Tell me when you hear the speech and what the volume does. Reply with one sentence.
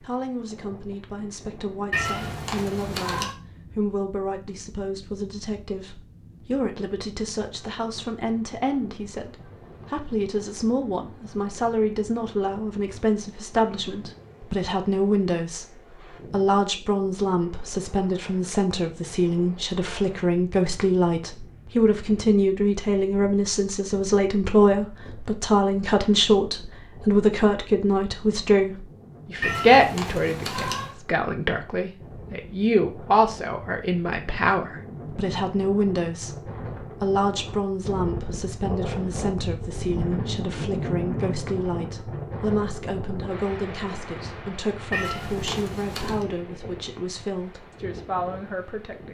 You can hear the speech from 0.0 to 49.1 s, getting louder then quieter.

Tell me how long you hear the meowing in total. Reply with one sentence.
You can hear the meowing for 4 seconds altogether.